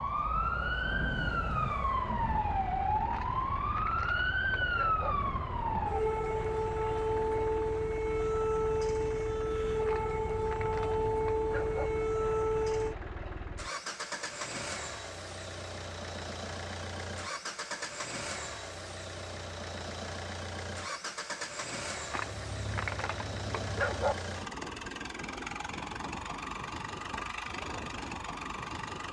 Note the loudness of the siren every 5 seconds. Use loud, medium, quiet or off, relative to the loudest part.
loud, loud, loud, off, off, off.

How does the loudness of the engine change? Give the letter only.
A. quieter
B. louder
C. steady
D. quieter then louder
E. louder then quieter
B.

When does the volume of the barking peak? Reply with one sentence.
The volume of the barking peaks at 24 seconds.